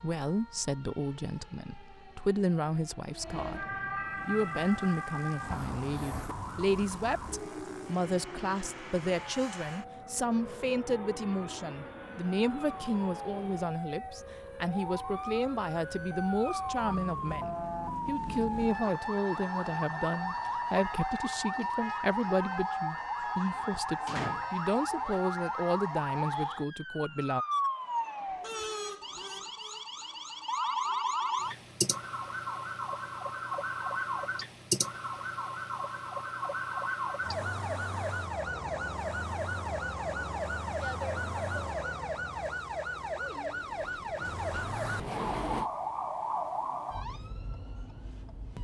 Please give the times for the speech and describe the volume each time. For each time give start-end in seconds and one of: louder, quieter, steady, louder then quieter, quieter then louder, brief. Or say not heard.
0.0-27.4 steady.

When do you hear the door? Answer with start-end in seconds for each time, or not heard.
5.5-6.3, 24.1-24.5, 43.8-45.7.